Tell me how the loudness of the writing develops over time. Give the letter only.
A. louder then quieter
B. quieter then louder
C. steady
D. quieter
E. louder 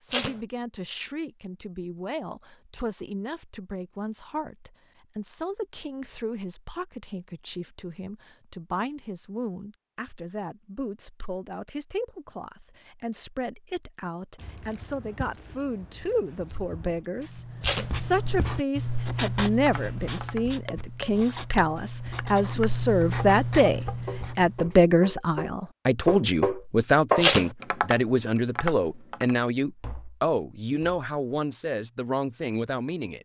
B.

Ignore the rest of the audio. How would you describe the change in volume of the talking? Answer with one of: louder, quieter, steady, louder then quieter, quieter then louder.
louder.